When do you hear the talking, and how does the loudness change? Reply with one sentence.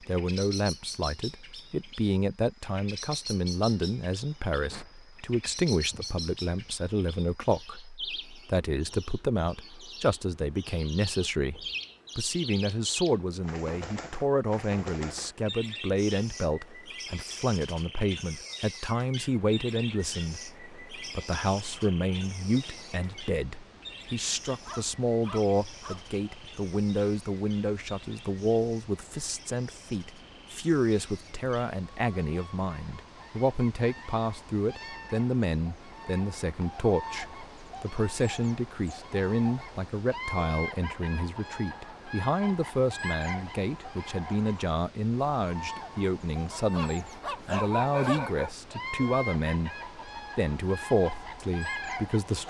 The talking can be heard from 0.0 to 52.4 s, at a steady volume.